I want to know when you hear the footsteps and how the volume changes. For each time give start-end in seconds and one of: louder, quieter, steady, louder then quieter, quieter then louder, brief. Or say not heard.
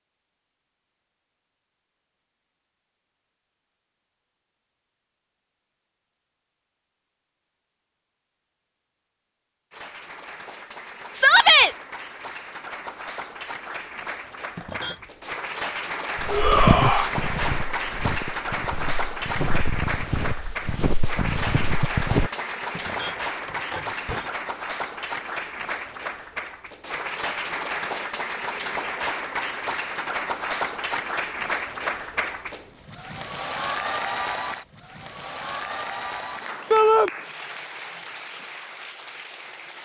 16.1-22.3 quieter then louder.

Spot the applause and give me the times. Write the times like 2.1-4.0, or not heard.
9.7-39.8.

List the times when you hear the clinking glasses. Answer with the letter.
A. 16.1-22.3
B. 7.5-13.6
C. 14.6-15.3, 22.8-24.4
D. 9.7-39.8
C.